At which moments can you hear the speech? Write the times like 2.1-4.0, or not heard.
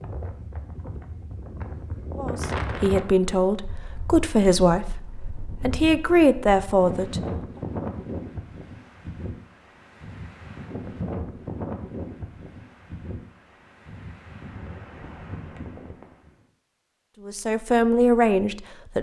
2.1-7.2, 17.2-18.9.